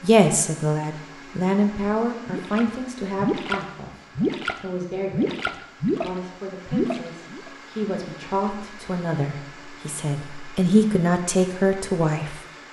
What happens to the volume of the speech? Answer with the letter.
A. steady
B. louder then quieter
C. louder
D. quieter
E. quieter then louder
E.